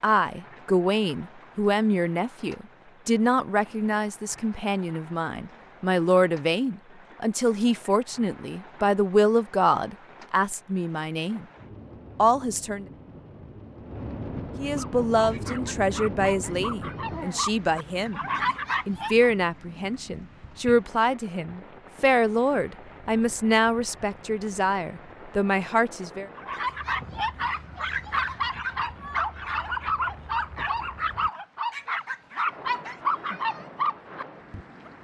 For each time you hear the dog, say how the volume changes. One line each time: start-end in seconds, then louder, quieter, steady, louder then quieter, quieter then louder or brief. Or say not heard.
14.6-19.3 louder
26.4-34.9 steady.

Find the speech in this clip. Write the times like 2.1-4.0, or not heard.
0.0-11.4, 12.2-12.8, 14.6-18.2, 18.9-26.3.